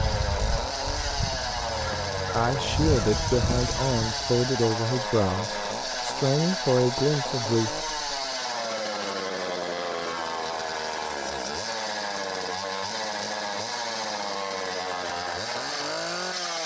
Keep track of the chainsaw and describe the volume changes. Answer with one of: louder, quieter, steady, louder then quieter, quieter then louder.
steady.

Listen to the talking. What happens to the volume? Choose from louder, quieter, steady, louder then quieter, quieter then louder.
steady.